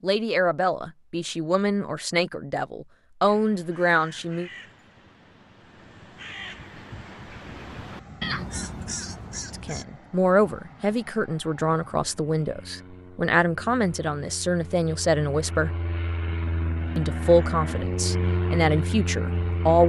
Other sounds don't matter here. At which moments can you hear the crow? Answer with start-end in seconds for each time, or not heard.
3.2-9.8.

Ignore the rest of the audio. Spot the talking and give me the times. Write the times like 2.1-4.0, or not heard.
0.0-4.5, 9.5-15.7, 16.9-19.8.